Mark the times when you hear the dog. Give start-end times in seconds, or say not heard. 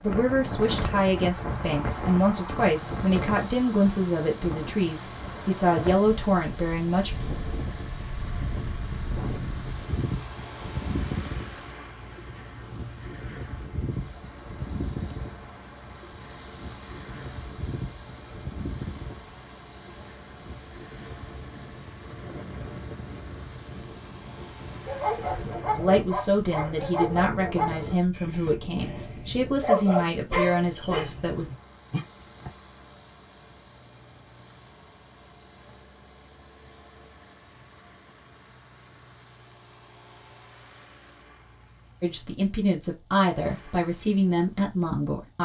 24.9-32.5.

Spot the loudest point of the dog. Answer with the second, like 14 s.
30 s.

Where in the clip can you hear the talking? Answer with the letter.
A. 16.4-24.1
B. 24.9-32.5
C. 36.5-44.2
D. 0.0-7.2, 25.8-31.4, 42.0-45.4
D.